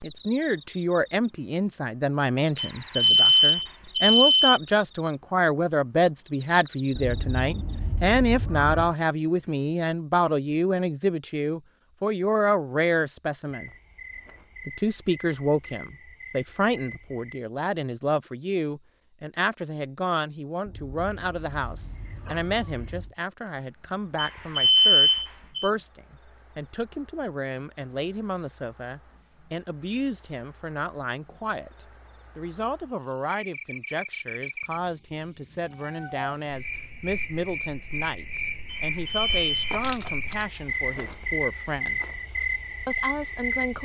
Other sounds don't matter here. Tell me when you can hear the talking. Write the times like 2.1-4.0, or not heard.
0.0-13.7, 14.7-42.0, 42.9-43.8.